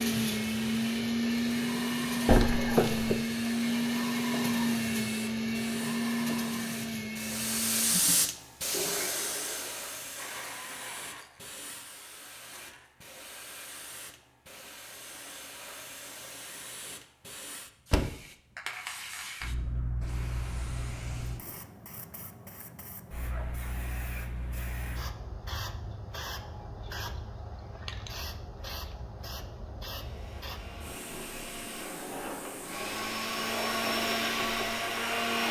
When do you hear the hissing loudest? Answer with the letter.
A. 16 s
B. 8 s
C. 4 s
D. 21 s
B.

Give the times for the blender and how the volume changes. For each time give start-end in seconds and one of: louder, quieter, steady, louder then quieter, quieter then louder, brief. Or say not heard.
0.0-12.9 quieter
29.9-35.4 louder.